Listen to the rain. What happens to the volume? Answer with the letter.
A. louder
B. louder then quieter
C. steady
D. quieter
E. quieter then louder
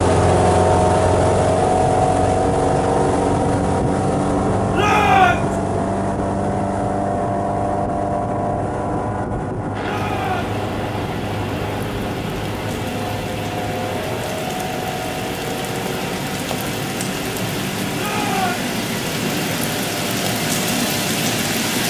A.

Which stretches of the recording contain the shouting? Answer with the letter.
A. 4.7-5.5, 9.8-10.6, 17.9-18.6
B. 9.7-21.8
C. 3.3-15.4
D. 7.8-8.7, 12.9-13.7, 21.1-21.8
A.